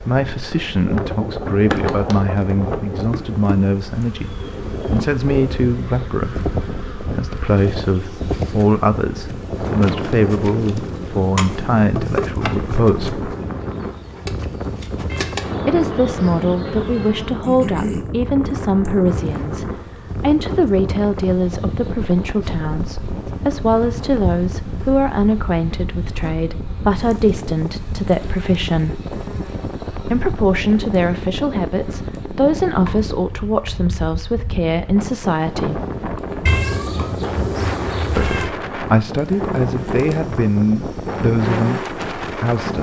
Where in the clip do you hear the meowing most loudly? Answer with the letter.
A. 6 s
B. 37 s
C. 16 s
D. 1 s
B.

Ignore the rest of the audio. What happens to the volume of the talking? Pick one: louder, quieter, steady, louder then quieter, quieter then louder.
steady.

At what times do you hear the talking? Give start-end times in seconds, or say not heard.
0.0-13.3, 15.7-29.0, 30.1-35.9, 38.1-42.7.